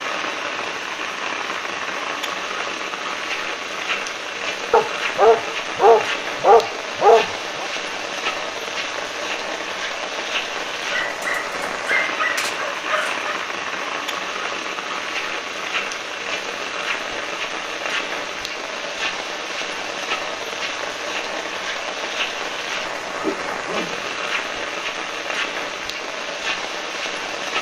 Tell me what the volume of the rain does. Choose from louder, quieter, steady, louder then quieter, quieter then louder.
steady.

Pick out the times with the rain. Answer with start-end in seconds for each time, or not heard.
0.0-27.5.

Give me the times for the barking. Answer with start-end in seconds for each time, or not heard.
4.7-7.7, 10.8-13.3, 23.0-24.1.